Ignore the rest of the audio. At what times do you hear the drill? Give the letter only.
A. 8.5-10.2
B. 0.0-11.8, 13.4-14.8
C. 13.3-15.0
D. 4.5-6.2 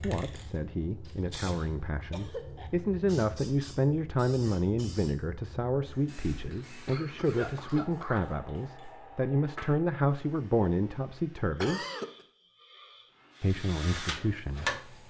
C.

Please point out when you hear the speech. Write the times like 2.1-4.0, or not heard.
0.0-11.8, 13.4-14.8.